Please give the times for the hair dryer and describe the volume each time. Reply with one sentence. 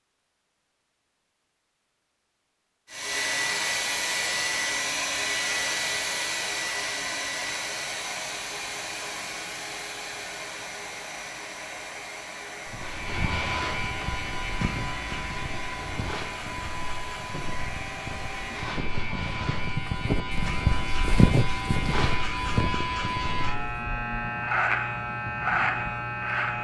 The hair dryer can be heard from 2.9 to 18.8 s, getting quieter.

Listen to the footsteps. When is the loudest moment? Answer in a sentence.
The volume of the footsteps peaks at 21 seconds.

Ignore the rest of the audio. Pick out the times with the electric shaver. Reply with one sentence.
You can hear the electric shaver from 12.8 to 26.5 s.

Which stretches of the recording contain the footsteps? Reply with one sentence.
You can hear the footsteps from 12.7 to 23.6 s.